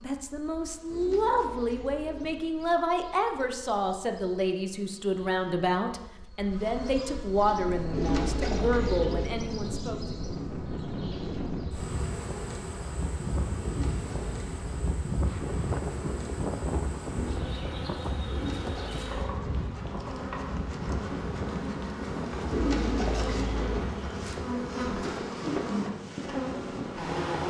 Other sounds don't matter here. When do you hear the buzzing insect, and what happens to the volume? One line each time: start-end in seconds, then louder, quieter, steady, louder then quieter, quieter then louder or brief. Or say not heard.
0.0-27.4 louder.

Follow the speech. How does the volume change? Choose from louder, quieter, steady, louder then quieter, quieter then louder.
steady.